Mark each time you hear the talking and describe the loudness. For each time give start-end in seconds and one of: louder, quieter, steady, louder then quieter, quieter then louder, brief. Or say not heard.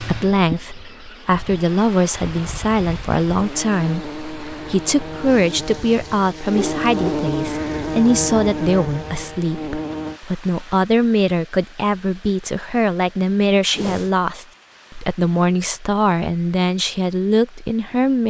0.0-18.2 steady.